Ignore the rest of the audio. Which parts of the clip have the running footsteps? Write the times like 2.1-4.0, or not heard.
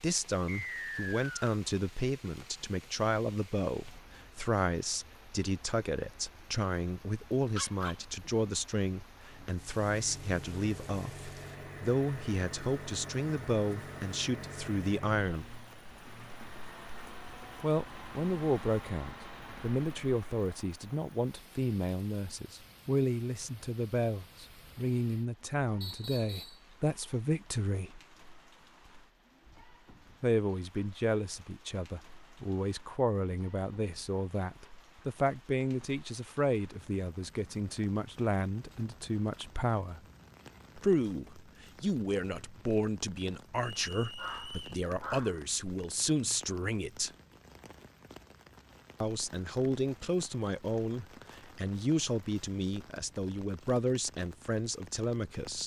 not heard.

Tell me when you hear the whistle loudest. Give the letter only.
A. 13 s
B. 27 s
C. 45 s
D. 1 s
D.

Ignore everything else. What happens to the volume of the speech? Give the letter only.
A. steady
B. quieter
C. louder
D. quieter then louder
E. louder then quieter
A.